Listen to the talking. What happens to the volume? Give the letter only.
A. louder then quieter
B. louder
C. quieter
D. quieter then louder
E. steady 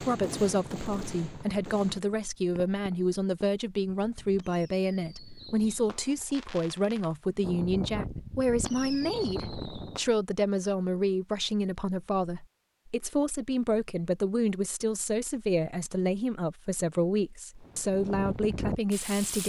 E.